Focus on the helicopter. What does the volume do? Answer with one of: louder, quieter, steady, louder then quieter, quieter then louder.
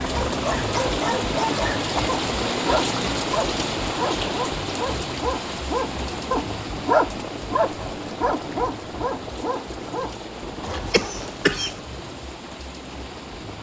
quieter.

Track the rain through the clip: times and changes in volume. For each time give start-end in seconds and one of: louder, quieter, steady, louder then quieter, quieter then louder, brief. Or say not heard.
0.0-13.5 quieter.